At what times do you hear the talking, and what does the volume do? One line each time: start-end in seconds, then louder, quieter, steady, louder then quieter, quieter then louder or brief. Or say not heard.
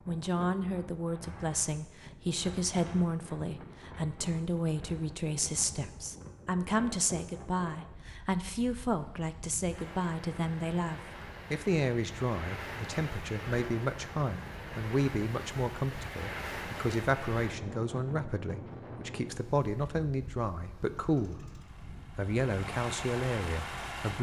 0.1-21.4 steady
22.1-24.1 brief.